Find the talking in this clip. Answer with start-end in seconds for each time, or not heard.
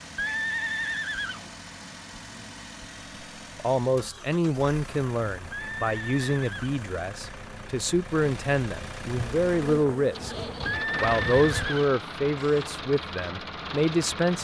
3.5-10.3, 10.9-14.3.